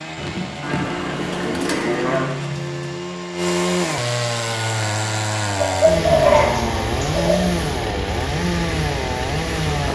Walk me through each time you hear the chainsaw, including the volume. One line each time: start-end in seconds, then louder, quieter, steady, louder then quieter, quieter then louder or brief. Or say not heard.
0.0-9.9 louder.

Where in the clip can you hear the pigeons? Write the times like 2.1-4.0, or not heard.
0.1-3.0, 5.5-7.4.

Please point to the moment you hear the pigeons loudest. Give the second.
6 s.